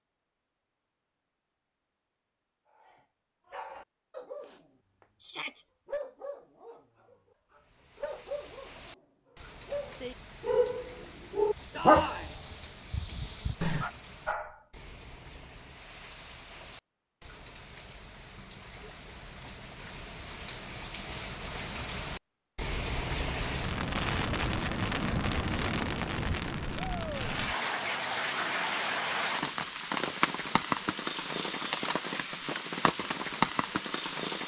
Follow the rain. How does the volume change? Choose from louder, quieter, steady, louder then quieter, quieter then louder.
louder.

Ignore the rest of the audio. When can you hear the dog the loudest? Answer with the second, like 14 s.
12 s.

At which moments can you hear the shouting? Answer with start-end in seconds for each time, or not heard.
5.2-5.7, 11.7-12.3, 26.8-27.2.